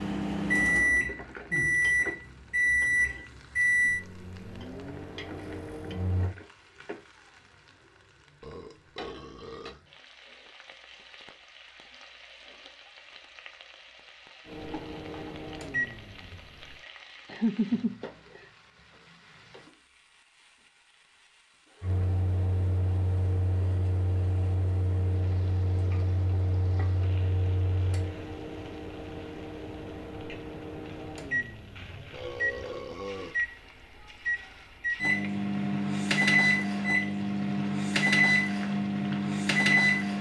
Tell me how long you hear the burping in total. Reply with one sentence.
The burping can be heard for 3 seconds in total.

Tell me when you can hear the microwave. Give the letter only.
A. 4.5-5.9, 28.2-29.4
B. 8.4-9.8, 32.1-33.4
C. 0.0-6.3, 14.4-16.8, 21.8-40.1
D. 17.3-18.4
C.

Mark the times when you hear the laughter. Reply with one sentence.
The laughter can be heard from 17.3 to 18.4 s.